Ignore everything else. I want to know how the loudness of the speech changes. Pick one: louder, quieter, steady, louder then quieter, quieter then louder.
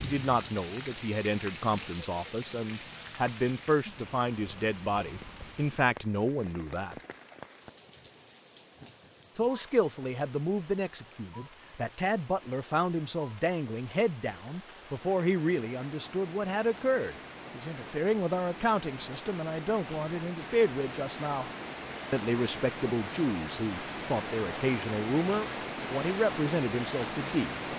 steady.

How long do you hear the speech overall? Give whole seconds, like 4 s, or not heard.
25 s.